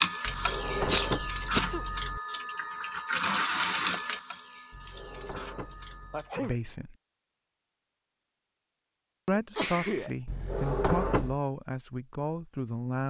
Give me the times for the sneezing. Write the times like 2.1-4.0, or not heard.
0.8-1.8, 6.1-6.6, 9.3-10.1.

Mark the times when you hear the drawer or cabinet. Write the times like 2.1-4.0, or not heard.
0.2-2.2, 4.7-6.3, 10.2-11.4.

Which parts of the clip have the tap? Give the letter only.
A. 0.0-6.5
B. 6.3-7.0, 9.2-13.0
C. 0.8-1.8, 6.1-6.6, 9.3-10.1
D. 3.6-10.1
A.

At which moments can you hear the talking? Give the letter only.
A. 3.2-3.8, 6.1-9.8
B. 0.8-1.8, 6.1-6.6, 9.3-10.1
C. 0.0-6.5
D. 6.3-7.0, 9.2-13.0
D.